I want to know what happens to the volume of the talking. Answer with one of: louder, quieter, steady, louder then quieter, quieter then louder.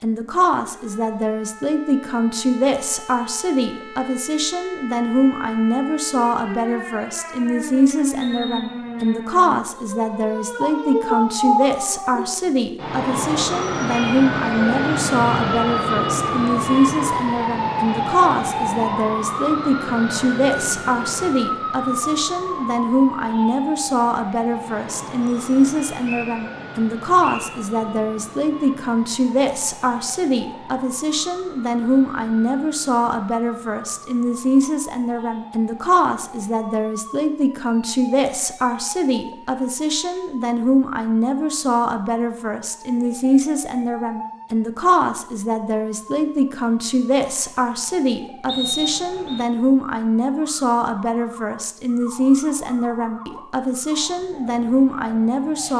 steady.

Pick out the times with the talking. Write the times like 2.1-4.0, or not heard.
0.0-55.7.